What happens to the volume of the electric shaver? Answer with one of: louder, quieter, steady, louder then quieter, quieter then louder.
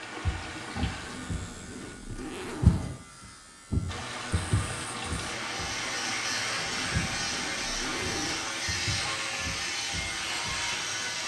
louder.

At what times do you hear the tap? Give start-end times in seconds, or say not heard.
0.0-1.9, 3.9-11.2.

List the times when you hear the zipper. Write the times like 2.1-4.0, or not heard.
1.0-3.0, 6.7-8.5.